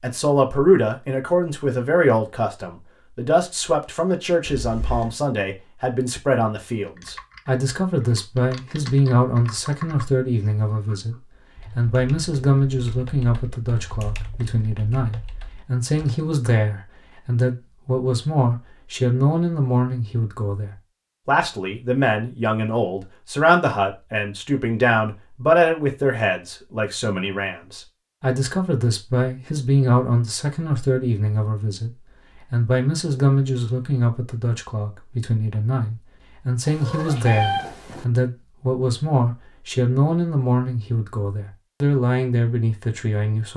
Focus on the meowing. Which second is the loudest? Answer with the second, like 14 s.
37 s.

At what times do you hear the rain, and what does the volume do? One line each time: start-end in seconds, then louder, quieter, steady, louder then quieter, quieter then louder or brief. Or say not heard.
not heard.